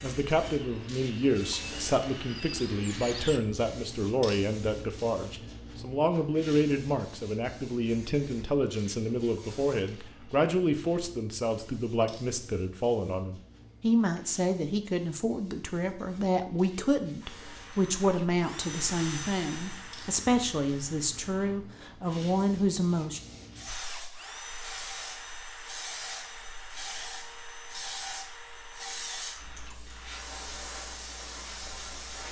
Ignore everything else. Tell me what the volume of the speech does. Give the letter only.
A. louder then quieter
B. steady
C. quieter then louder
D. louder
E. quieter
B.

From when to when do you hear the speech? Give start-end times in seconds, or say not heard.
0.0-23.2.